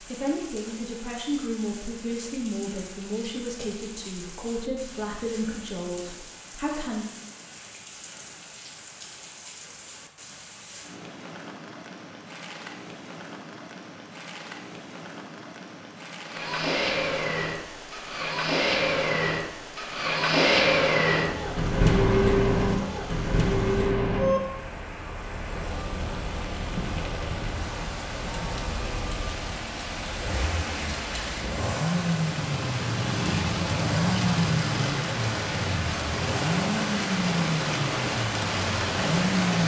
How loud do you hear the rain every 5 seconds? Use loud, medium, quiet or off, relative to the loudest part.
quiet, quiet, quiet, quiet, quiet, medium, loud, loud.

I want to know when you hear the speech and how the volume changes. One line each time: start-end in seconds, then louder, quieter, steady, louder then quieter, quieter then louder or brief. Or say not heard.
0.0-7.0 steady.